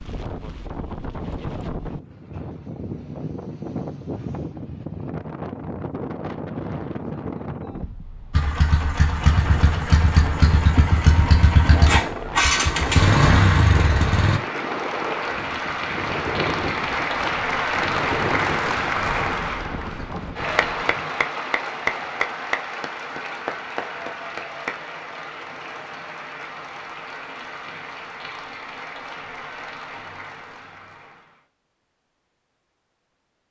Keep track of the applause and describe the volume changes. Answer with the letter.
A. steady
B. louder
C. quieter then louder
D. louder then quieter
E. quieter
E.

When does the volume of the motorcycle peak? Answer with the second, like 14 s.
13 s.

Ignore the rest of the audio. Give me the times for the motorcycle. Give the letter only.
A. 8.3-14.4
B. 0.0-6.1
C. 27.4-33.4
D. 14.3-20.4
A.